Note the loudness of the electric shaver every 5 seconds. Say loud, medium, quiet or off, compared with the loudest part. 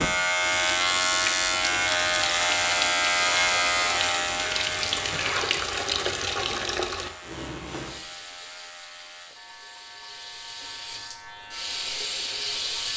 loud, quiet, quiet.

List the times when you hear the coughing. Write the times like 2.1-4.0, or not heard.
5.0-5.7.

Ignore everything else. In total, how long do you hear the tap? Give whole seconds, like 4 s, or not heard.
13 s.